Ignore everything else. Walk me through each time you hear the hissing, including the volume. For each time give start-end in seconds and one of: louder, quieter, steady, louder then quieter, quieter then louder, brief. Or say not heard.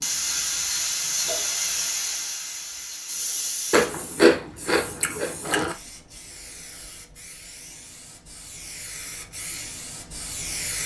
0.0-10.8 quieter then louder.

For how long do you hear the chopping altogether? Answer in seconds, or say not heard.
not heard.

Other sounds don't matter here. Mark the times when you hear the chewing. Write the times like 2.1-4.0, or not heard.
3.7-5.8.